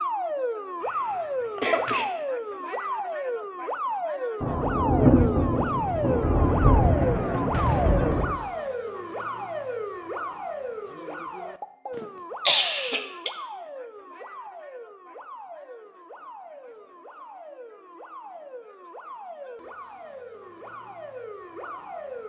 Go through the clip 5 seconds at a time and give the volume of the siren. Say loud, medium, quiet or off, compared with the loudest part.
loud, loud, medium, quiet, medium.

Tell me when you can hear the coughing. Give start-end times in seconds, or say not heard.
0.8-2.0, 11.9-13.3.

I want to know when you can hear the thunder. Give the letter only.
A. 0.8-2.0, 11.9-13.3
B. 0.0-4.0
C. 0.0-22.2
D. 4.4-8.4
D.